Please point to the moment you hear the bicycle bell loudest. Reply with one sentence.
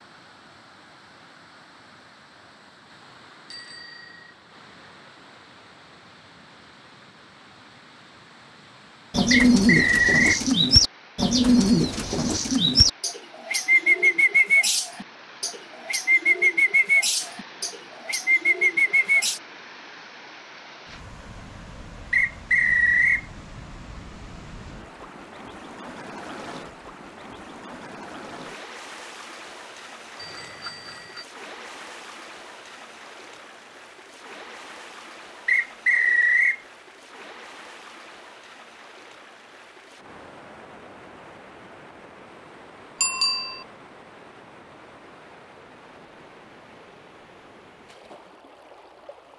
The loudest moment of the bicycle bell is at 43 seconds.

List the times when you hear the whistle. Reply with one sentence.
The whistle can be heard from 9.3 to 10.4 s, from 22.1 to 23.2 s and from 35.5 to 36.6 s.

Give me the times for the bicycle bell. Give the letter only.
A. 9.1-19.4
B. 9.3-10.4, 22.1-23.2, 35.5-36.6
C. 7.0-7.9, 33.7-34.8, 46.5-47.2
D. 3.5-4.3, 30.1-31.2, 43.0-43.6
D.